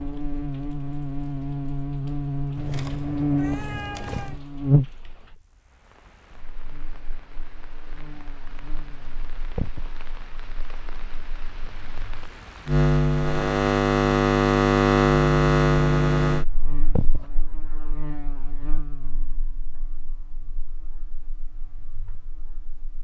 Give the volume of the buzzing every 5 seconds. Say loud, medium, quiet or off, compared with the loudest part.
medium, quiet, loud, loud, quiet.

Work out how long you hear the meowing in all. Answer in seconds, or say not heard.
2 s.